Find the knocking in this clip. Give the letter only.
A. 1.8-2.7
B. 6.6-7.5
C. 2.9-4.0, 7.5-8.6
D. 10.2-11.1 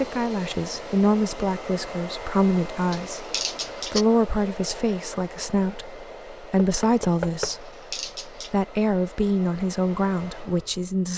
B.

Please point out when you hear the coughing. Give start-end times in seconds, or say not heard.
2.9-4.0, 7.5-8.6.